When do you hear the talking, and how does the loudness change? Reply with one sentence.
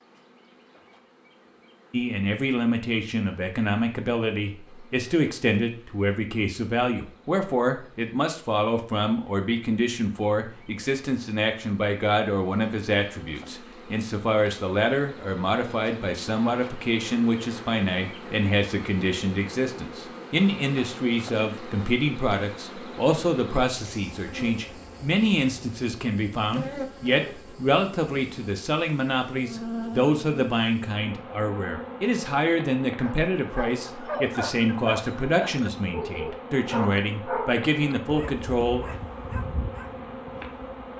The talking can be heard from 1.9 to 39.0 s, at a steady volume.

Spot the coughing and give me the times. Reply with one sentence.
The coughing can't be heard in this clip.